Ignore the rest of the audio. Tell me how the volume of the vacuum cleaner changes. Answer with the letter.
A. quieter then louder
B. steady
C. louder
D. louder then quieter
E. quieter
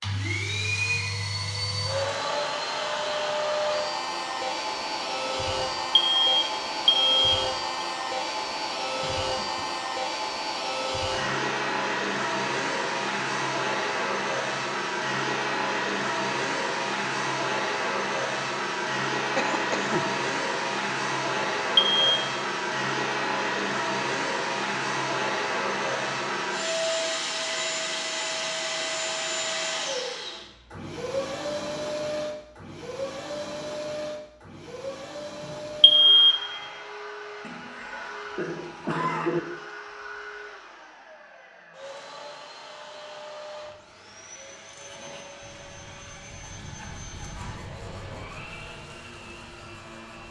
E.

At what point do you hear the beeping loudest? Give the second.
36 s.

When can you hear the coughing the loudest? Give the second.
39 s.